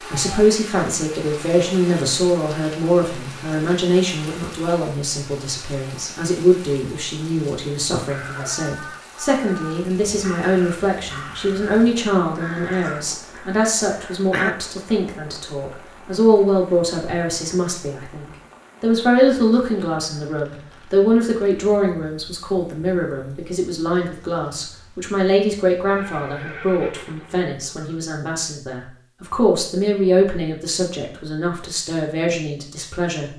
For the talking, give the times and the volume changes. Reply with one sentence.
You can hear the talking from 0.1 to 33.3 s, at a steady volume.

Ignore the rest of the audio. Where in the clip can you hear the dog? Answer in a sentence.
The dog can't be heard in this clip.